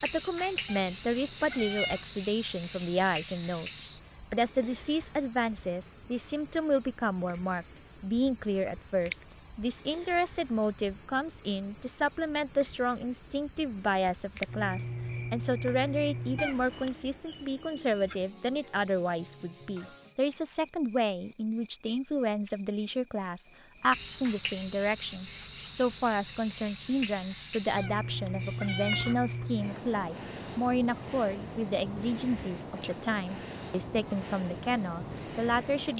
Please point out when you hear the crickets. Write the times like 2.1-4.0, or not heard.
0.0-35.9.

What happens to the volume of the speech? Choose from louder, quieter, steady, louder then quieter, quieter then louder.
steady.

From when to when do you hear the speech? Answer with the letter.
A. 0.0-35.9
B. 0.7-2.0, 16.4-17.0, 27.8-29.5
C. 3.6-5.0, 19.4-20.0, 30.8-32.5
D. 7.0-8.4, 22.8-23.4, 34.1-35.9
A.